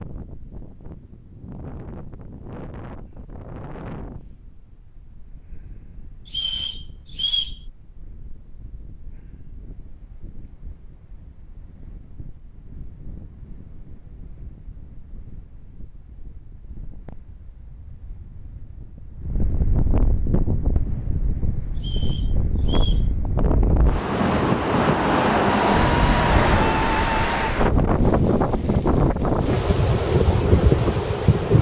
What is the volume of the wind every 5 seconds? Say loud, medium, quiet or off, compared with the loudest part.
quiet, quiet, quiet, quiet, medium, loud, loud.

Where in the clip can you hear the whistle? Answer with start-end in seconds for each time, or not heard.
6.2-7.5, 21.8-23.1.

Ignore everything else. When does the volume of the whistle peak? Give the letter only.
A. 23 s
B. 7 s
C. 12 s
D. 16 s
B.